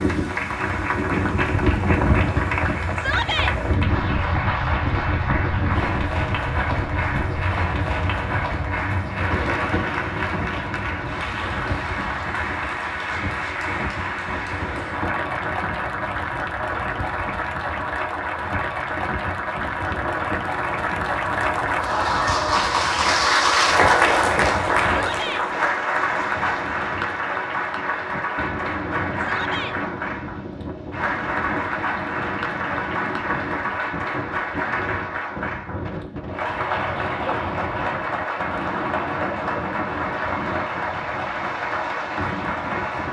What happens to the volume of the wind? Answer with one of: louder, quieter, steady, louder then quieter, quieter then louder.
quieter.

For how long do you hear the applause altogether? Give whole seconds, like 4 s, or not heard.
43 s.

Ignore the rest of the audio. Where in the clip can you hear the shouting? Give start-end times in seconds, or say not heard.
3.0-3.5, 24.9-25.4, 29.1-29.8.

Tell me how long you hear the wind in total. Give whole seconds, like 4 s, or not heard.
43 s.